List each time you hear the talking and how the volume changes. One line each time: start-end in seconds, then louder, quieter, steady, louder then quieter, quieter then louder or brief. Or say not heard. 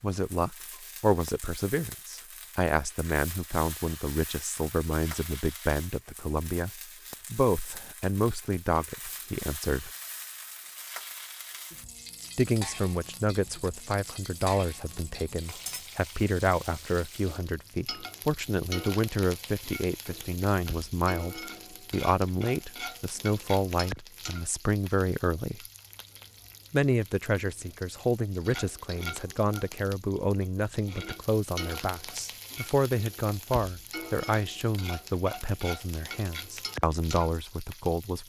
0.0-9.9 steady
12.3-25.6 steady
26.7-38.2 steady.